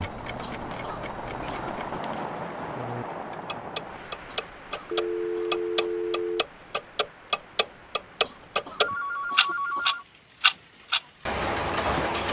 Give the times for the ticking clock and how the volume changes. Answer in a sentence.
You can hear the ticking clock briefly from 0.0 to 2.0 s; and from 2.8 to 12.2 s, getting louder.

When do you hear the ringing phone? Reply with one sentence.
You can hear the ringing phone from 0.5 to 2.3 s, from 4.9 to 6.5 s and from 8.8 to 10.1 s.